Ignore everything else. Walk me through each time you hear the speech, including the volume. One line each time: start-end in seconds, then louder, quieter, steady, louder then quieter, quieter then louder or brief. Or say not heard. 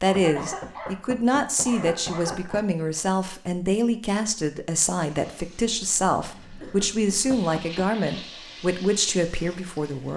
0.0-10.1 steady.